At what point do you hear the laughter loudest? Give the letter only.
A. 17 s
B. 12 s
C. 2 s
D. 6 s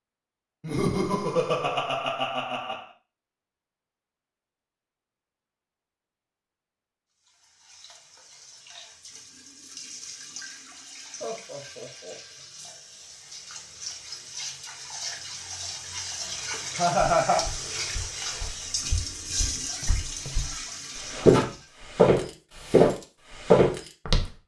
A.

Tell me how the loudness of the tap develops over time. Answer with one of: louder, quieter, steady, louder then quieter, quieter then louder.
louder.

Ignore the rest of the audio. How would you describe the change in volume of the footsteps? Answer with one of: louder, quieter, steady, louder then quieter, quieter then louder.
louder.